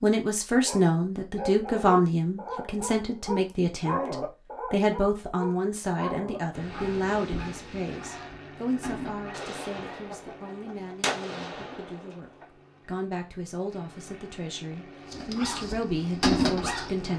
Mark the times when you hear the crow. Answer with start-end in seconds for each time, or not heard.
not heard.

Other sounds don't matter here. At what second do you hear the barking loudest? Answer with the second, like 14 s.
16 s.